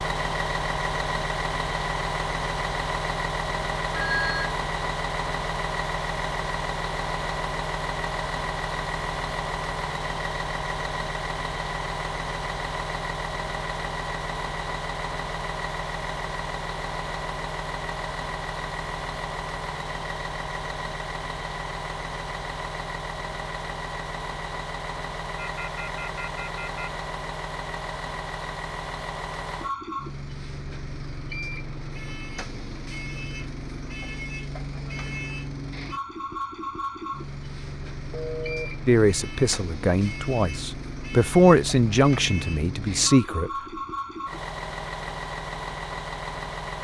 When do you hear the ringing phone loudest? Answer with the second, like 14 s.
4 s.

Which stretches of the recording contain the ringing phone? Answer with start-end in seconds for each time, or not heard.
3.9-4.5, 25.4-26.9, 38.1-38.7.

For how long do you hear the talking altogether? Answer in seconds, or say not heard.
5 s.